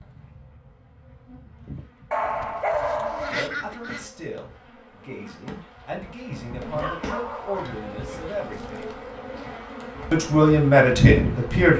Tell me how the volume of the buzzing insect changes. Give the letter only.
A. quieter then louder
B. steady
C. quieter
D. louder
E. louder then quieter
D.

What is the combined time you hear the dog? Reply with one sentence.
You can hear the dog for 4 seconds altogether.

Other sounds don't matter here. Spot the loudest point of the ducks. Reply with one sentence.
The loudest moment of the ducks is at 3 seconds.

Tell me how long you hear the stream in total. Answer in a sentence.
The stream can't be heard in this clip.